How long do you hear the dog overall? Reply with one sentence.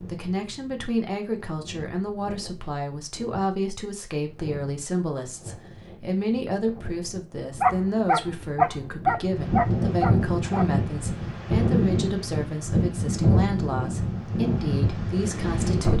You can hear the dog for 3 seconds altogether.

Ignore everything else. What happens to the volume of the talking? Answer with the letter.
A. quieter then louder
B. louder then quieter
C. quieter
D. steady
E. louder
D.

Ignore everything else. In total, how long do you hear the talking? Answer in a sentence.
The talking can be heard for 16 seconds in total.